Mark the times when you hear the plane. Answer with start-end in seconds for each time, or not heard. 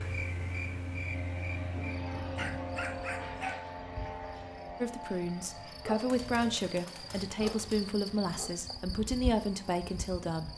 0.0-10.5.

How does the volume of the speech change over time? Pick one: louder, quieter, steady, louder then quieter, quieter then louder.
steady.